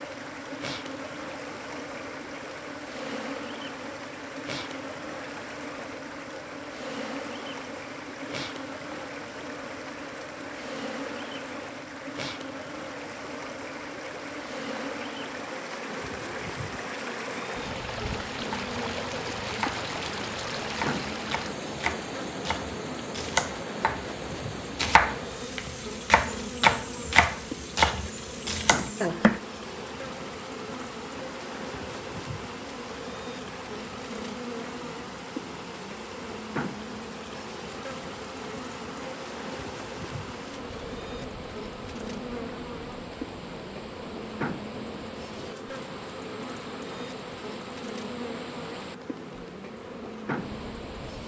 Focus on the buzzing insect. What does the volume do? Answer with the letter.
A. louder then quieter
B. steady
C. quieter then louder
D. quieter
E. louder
B.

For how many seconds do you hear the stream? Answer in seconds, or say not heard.
51 s.